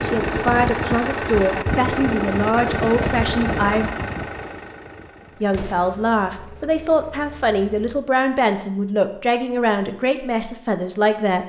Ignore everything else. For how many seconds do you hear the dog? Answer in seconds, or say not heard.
not heard.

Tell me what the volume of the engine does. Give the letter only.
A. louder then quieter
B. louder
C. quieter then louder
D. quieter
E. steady
D.